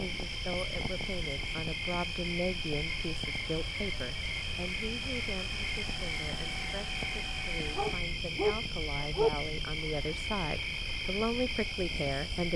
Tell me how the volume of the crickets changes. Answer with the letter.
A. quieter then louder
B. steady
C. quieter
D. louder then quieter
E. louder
B.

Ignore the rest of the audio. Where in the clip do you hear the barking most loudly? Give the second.
9 s.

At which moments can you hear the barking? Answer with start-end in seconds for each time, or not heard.
7.8-9.3.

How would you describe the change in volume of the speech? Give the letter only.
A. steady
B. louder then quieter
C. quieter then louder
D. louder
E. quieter
C.